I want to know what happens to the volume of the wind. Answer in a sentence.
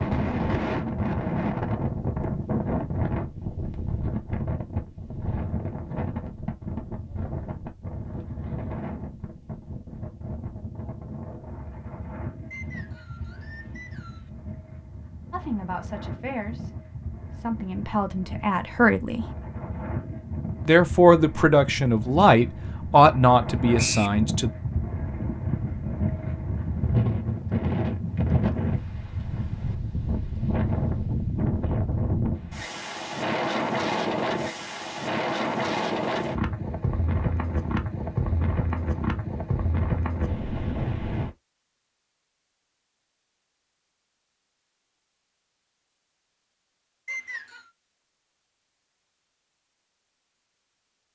The loudness of the wind goes down, then up.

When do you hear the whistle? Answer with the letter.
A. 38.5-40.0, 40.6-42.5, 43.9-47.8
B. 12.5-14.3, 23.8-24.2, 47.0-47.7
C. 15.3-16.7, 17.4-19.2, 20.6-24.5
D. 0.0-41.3
B.